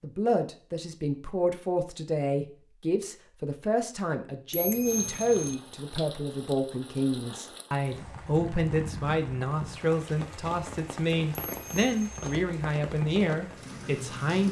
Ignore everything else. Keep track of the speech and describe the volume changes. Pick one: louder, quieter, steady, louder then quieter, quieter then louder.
steady.